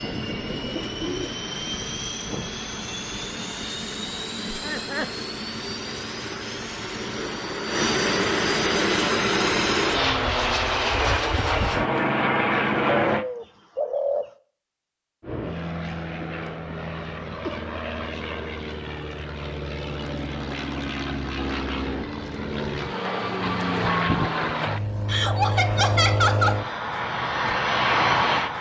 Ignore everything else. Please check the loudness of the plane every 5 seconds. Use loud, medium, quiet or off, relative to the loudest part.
medium, loud, loud, medium, medium, loud.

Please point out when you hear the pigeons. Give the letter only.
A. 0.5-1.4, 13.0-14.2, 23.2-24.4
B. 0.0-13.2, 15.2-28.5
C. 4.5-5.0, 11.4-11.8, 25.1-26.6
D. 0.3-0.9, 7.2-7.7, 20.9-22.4
A.